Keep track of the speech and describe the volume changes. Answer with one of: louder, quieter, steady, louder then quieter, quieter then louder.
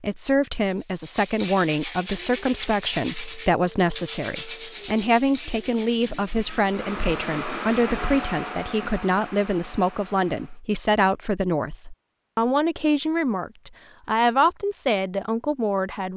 steady.